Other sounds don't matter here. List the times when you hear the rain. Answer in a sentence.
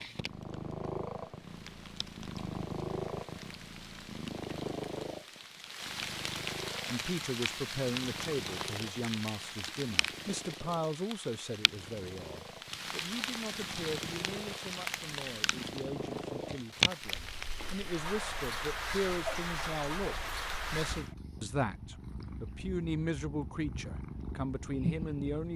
You can hear the rain from 0.0 to 21.1 s.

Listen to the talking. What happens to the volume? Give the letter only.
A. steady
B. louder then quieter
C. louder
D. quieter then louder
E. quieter
D.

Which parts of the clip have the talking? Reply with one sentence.
The talking can be heard from 6.8 to 25.5 s.